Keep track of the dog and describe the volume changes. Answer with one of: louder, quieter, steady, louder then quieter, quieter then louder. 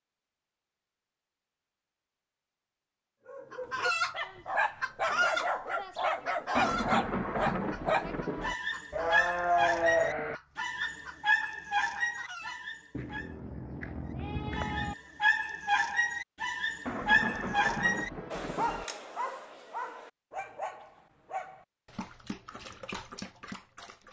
quieter.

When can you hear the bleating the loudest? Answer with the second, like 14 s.
10 s.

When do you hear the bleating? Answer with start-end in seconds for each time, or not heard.
8.9-10.3, 12.9-14.9.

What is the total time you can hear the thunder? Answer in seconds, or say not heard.
4 s.